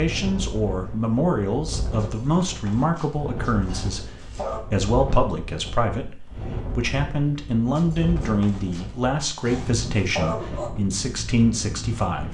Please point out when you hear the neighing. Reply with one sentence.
You can't hear the neighing here.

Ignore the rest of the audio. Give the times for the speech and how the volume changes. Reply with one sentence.
The speech can be heard from 0.0 to 12.2 s, at a steady volume.